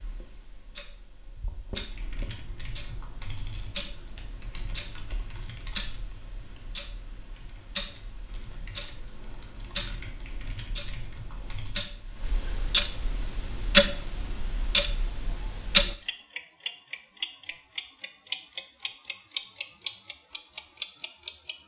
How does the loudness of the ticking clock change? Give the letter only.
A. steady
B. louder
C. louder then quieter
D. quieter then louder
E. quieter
B.